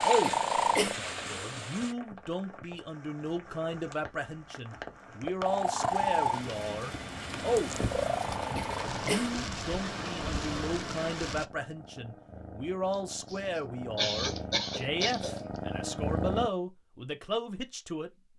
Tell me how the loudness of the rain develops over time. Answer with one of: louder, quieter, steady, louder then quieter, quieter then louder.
louder.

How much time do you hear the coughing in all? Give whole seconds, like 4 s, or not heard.
4 s.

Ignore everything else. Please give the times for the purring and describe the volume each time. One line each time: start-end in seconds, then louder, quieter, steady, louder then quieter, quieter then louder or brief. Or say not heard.
0.0-1.9 brief
5.5-16.5 quieter then louder.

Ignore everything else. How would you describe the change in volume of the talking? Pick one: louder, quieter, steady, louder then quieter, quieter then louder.
steady.